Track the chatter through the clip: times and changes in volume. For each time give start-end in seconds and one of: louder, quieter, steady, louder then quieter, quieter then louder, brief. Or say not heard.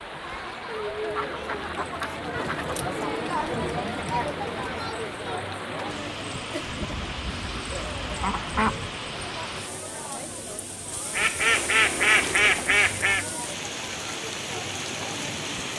0.0-15.7 quieter.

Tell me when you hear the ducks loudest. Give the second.
12 s.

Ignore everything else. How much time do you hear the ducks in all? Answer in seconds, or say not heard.
6 s.